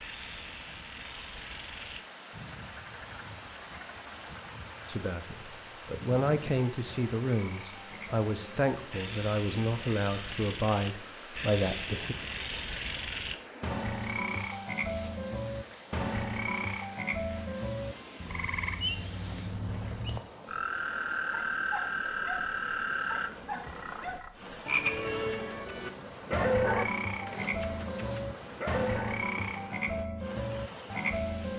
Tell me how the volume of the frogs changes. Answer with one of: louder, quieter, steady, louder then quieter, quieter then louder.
louder.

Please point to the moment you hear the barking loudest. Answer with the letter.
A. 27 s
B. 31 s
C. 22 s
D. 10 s
A.